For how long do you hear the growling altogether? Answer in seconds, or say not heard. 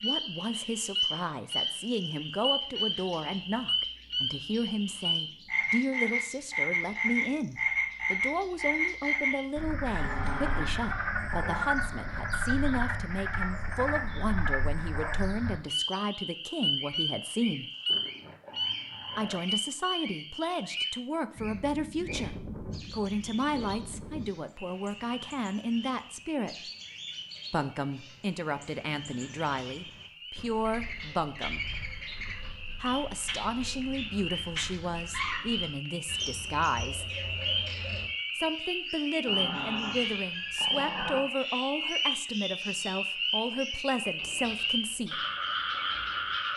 5 s.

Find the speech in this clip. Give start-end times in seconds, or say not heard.
0.0-17.7, 19.1-26.7, 27.5-31.6, 32.8-37.1, 38.4-45.2.